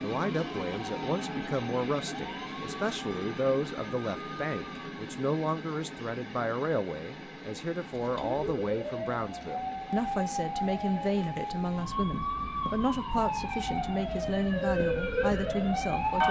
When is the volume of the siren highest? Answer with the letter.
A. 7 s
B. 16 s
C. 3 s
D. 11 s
B.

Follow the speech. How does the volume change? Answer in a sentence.
The volume of the speech stays about the same.